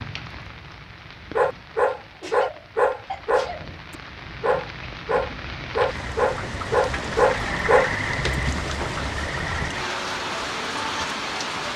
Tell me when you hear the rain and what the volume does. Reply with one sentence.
The rain can be heard from 0.0 to 11.7 s, getting louder.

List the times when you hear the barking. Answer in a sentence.
The barking can be heard from 1.4 to 9.1 s.